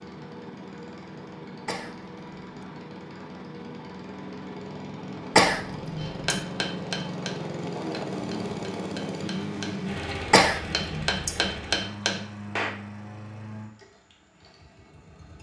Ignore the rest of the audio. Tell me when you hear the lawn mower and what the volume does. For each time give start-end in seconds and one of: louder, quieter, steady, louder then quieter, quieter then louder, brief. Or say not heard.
0.0-15.3 louder then quieter.